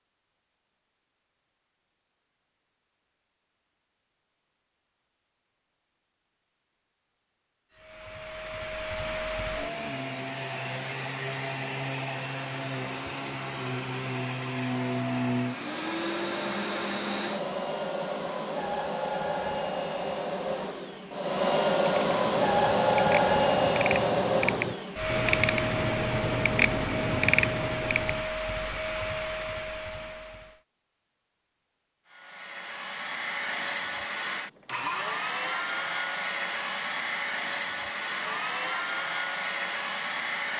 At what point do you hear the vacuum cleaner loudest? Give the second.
23 s.